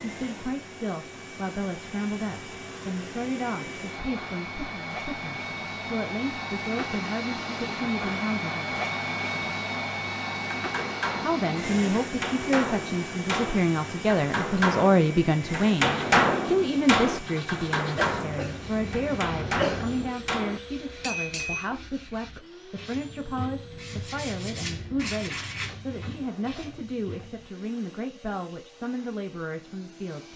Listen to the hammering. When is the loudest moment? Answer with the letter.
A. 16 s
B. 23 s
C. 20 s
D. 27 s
A.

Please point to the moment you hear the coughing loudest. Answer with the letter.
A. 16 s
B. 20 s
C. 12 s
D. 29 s
B.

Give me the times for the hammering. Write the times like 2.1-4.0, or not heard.
10.6-21.7.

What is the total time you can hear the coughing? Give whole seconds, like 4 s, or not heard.
2 s.